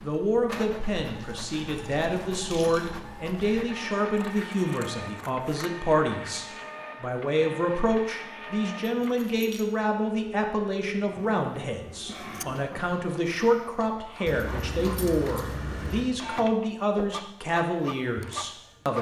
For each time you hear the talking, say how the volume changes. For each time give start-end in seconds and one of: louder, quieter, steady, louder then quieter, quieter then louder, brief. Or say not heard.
0.0-18.9 steady.